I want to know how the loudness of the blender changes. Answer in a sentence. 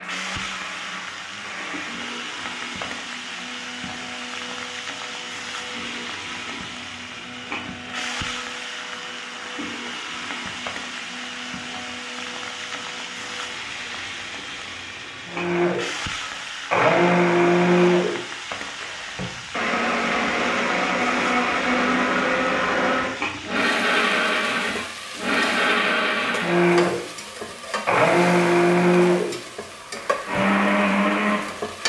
The loudness of the blender goes up.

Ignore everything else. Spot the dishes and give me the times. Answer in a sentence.
The dishes can't be heard in this clip.